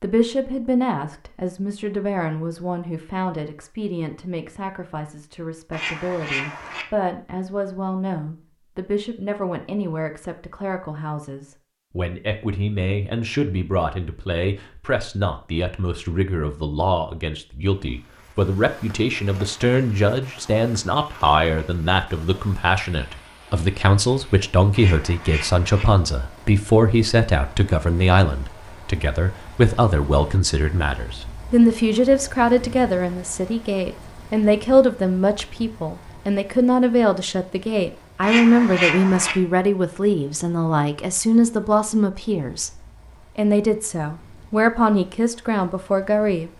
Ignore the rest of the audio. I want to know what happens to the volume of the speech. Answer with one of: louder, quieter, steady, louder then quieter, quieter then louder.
louder.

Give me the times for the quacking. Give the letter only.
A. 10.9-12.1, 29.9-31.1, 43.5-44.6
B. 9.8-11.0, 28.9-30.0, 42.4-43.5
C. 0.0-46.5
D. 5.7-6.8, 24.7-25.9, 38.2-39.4
D.